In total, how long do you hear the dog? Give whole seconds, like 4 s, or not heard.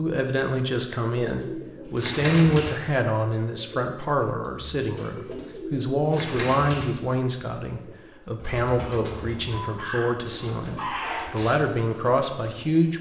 2 s.